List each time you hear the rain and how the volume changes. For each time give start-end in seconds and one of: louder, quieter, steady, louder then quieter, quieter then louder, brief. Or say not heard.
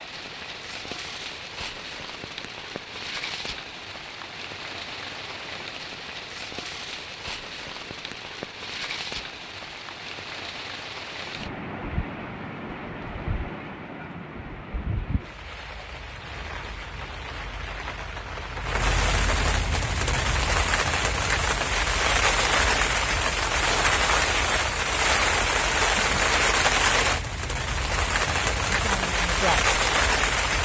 0.0-30.5 louder.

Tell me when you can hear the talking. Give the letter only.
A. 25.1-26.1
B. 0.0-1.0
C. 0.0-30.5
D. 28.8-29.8
D.